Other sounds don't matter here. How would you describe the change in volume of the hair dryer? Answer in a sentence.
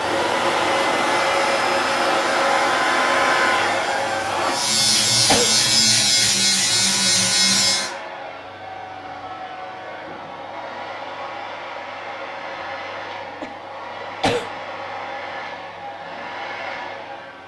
The volume of the hair dryer goes down.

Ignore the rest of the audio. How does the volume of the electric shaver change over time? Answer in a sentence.
The loudness of the electric shaver goes up.